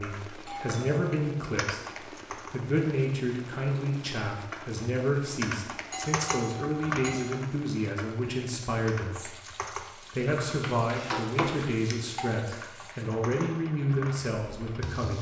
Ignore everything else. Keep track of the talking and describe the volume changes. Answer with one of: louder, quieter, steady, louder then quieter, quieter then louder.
steady.